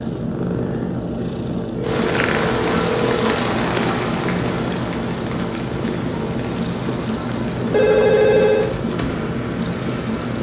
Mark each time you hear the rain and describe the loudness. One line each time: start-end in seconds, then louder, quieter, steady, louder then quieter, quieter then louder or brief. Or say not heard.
1.8-10.3 quieter.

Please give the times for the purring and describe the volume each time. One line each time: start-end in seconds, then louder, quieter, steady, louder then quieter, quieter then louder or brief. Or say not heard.
0.0-10.3 steady.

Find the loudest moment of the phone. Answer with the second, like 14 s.
8 s.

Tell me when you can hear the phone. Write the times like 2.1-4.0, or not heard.
1.1-3.4, 7.7-8.7.